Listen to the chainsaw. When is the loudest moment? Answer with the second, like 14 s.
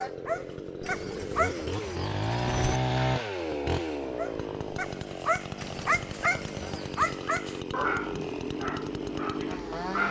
3 s.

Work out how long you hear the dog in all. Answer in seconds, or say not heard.
8 s.